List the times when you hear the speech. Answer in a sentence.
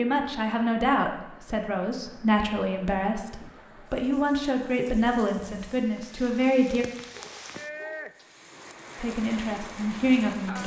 The speech can be heard from 0.0 to 6.8 s and from 8.9 to 10.6 s.